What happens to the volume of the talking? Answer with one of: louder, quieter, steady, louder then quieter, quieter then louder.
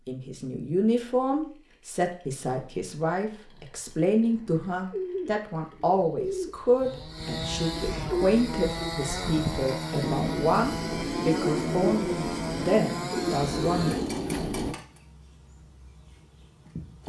steady.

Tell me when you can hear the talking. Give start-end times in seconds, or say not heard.
0.1-13.9.